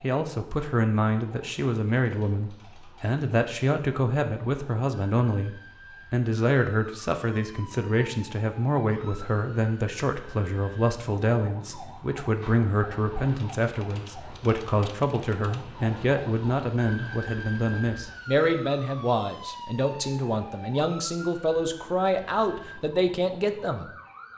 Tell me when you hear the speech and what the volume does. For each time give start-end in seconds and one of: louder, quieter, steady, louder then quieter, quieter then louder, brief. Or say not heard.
0.0-23.9 steady.